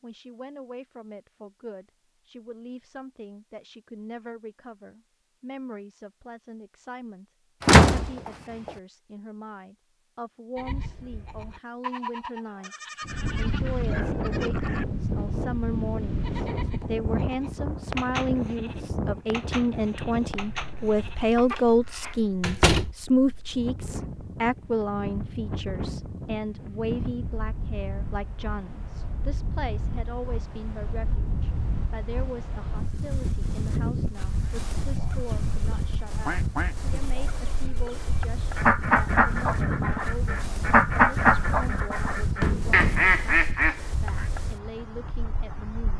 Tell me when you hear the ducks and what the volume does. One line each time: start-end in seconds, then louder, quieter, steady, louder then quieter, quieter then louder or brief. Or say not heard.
34.8-44.2 quieter then louder.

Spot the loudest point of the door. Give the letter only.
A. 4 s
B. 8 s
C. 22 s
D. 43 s
B.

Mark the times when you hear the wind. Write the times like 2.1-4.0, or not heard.
13.1-45.9.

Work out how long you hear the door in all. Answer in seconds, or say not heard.
3 s.